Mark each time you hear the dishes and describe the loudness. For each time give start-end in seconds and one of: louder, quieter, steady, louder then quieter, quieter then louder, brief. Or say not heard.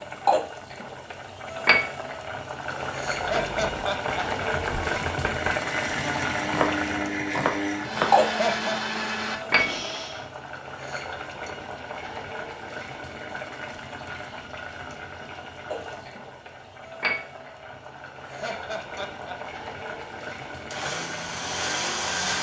not heard.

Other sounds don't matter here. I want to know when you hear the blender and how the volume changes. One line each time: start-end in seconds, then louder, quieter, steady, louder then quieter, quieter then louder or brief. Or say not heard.
5.5-10.2 steady
20.7-22.3 brief.